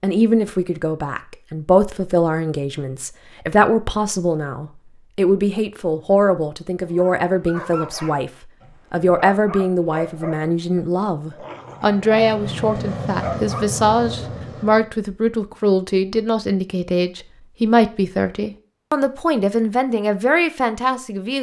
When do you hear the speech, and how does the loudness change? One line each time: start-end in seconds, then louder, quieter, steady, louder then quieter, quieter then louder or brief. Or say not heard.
0.0-21.3 steady.